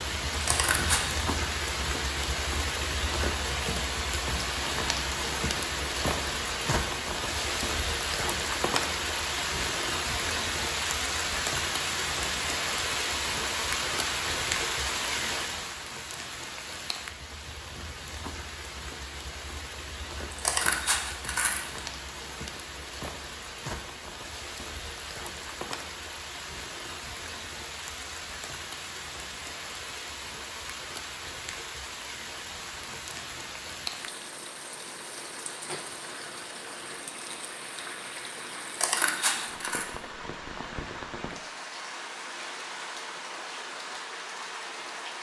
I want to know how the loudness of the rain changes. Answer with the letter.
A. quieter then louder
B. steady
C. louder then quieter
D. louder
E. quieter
E.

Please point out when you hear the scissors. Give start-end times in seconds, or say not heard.
0.3-1.1, 20.3-21.8, 38.6-39.9.